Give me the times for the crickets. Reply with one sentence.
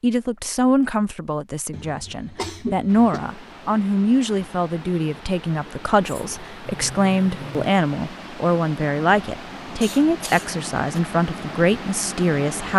The crickets can't be heard in this clip.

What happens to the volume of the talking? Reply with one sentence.
The loudness of the talking stays about the same.